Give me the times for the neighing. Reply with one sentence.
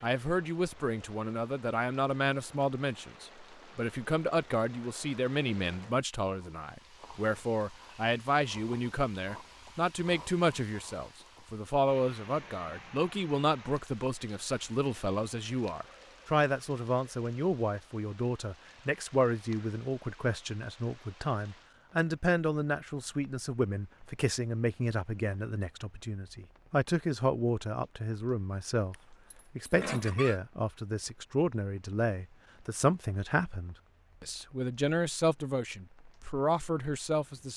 The neighing can be heard from 28.9 to 30.4 s.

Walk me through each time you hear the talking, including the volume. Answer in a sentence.
You can hear the talking from 0.0 to 37.5 s, at a steady volume.